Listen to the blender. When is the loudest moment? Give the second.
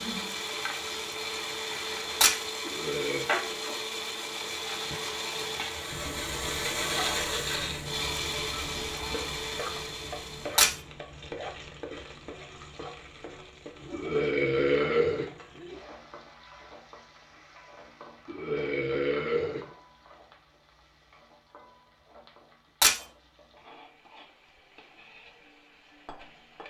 7 s.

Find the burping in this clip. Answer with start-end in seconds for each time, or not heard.
2.6-3.3, 13.9-15.3, 18.2-19.7.